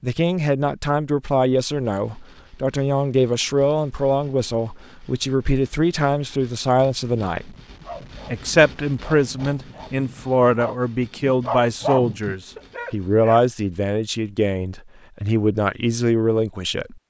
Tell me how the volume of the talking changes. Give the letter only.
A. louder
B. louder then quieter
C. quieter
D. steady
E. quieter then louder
D.